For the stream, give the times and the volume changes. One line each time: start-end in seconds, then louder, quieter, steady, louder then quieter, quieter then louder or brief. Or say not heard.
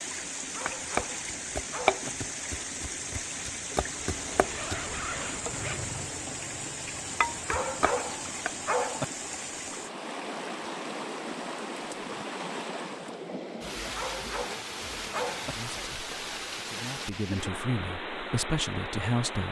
0.0-19.4 steady.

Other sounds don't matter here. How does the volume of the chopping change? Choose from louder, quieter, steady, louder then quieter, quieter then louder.
quieter then louder.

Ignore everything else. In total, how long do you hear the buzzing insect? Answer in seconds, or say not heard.
not heard.